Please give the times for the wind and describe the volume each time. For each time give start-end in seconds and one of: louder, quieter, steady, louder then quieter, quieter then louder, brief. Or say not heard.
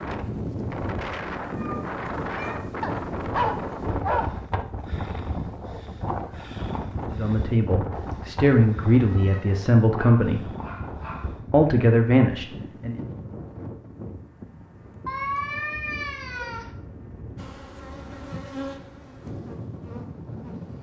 0.0-20.7 quieter.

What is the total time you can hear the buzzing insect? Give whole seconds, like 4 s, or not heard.
3 s.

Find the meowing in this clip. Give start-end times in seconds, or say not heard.
1.4-2.5, 7.9-9.6, 15.1-16.7.